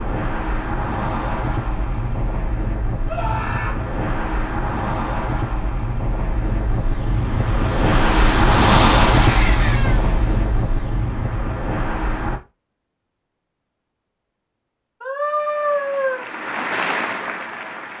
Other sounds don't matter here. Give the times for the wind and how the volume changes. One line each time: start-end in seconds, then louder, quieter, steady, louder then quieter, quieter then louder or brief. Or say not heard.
0.0-12.4 louder then quieter.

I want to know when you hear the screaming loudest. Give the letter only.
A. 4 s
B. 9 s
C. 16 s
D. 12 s
C.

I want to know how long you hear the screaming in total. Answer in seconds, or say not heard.
3 s.